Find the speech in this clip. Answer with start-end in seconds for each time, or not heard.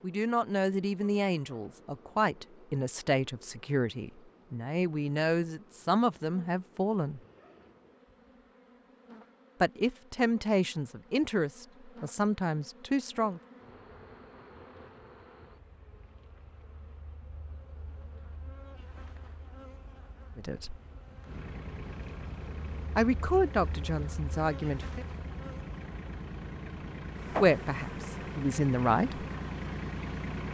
0.0-7.2, 9.6-13.4, 20.4-20.8, 22.9-25.1, 27.4-29.2.